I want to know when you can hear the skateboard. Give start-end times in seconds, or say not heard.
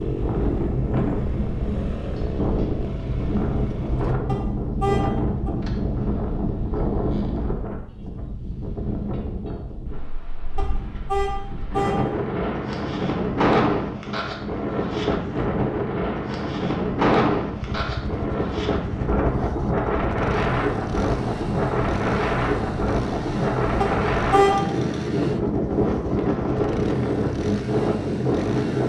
not heard.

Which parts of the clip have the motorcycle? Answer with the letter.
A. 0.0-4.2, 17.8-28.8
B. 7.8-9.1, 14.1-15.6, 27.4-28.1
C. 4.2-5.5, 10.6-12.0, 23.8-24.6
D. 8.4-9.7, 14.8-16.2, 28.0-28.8
A.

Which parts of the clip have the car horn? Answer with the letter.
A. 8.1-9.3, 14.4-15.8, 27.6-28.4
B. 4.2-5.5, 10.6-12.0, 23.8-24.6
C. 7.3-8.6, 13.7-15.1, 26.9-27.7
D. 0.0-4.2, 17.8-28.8
B.